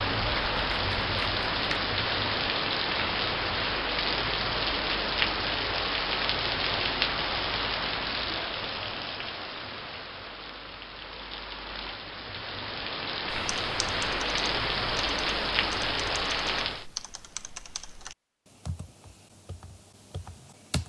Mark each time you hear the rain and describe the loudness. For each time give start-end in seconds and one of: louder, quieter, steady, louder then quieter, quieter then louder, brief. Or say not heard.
0.0-16.9 quieter then louder.